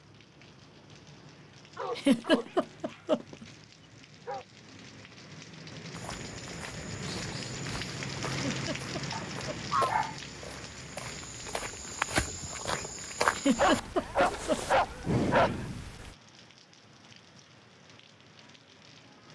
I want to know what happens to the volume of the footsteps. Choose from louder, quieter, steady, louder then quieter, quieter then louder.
louder.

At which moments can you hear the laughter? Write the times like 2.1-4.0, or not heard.
1.9-3.5, 8.5-9.6, 13.3-14.8.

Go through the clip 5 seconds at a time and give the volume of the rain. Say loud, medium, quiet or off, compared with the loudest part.
quiet, loud, medium, quiet.